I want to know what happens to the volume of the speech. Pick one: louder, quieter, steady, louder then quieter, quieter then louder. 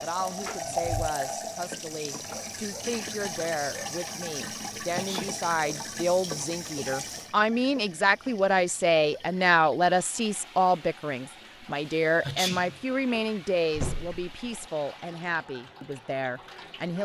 louder then quieter.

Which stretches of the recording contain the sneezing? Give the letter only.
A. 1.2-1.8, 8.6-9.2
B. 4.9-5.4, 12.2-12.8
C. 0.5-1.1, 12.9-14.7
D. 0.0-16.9
B.